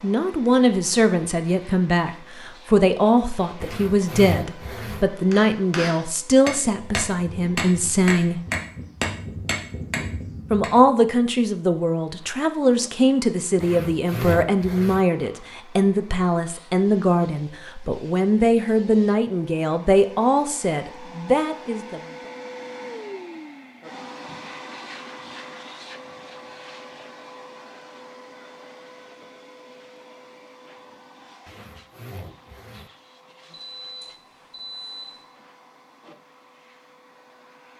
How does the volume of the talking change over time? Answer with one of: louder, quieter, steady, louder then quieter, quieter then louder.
steady.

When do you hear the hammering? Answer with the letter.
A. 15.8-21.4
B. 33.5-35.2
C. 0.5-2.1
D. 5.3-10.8
D.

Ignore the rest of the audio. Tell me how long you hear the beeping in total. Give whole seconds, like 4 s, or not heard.
2 s.